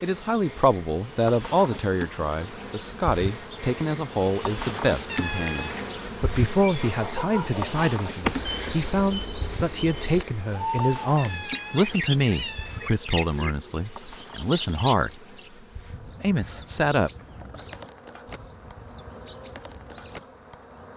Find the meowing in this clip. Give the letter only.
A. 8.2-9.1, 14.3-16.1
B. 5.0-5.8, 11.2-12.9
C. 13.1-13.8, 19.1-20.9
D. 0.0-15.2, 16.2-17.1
B.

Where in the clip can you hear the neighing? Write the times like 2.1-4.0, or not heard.
not heard.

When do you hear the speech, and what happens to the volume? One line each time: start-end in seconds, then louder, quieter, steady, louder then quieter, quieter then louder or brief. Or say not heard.
0.0-15.2 steady
16.2-17.1 brief.